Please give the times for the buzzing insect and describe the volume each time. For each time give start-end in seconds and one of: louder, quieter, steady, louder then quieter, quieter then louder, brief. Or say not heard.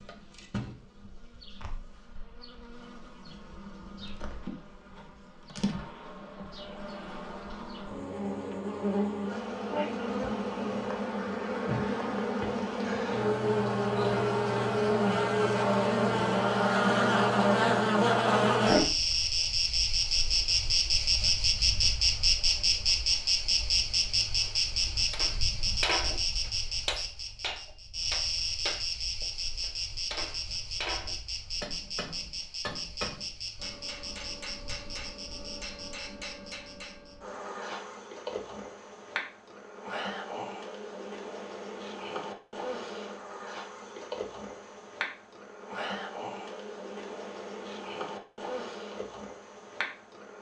0.0-50.3 louder then quieter.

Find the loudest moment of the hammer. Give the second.
26 s.